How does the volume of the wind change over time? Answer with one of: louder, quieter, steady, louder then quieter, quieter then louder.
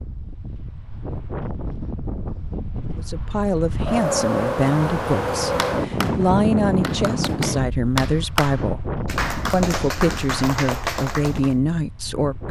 louder then quieter.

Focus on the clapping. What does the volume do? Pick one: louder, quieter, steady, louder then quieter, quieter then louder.
louder.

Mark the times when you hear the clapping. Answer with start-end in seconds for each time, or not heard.
5.5-11.6.